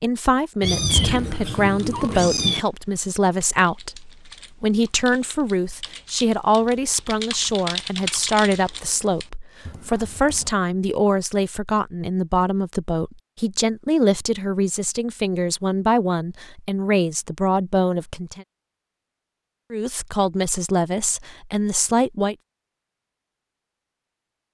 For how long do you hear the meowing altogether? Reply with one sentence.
The meowing can be heard for 2 seconds in total.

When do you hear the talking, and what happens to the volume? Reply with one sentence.
The talking can be heard from 0.0 to 18.4 s, at a steady volume; and briefly from 19.7 to 22.4 s.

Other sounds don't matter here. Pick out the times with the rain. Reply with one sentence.
The rain can't be heard in this clip.